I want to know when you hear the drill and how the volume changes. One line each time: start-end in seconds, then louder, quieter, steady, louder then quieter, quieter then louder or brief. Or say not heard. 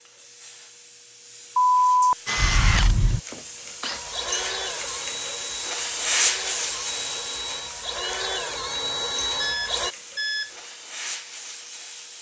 2.2-9.9 quieter then louder.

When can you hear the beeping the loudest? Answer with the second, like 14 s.
2 s.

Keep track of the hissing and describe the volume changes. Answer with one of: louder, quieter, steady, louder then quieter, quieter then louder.
louder then quieter.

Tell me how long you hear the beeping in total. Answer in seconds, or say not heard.
3 s.